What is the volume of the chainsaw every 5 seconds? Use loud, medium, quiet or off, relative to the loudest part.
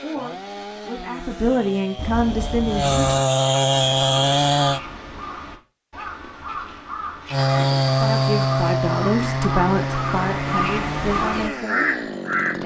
loud, loud, medium.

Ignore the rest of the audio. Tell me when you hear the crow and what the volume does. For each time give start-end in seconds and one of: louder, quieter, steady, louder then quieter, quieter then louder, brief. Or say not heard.
3.7-12.6 louder.